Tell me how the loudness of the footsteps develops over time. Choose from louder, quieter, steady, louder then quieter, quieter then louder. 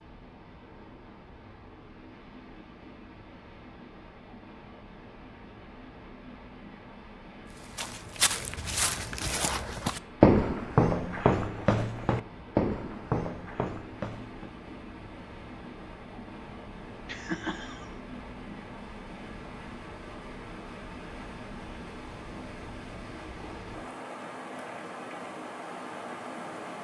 louder then quieter.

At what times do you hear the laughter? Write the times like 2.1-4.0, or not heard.
17.1-17.9.